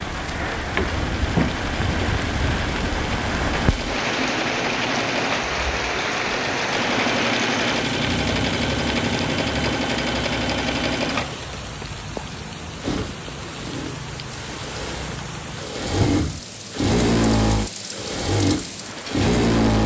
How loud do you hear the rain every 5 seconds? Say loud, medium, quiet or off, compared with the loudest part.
loud, loud, medium, medium.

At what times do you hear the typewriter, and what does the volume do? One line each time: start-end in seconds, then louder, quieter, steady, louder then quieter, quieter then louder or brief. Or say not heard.
not heard.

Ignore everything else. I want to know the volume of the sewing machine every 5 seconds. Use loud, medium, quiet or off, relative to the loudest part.
medium, loud, medium, loud.